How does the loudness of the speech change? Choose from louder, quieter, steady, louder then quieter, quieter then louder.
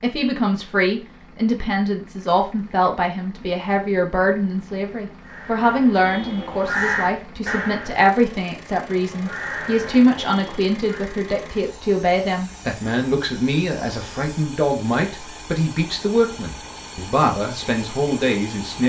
steady.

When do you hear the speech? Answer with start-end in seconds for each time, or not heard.
0.0-18.8.